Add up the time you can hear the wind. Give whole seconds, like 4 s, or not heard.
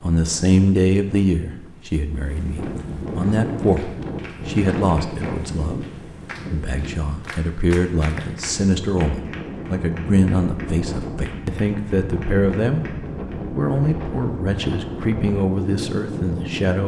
17 s.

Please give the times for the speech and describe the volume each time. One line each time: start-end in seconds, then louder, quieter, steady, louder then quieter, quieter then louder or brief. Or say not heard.
0.0-5.8 quieter then louder
6.5-16.8 steady.